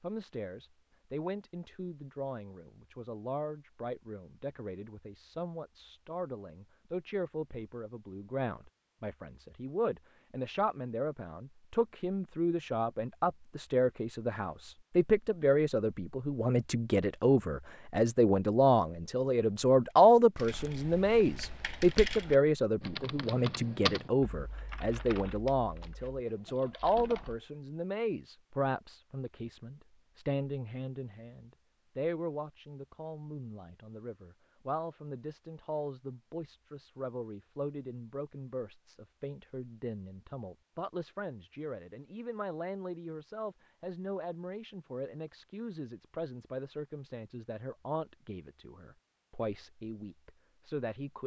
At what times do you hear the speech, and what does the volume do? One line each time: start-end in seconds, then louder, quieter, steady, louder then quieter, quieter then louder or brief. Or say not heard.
0.0-51.2 louder then quieter.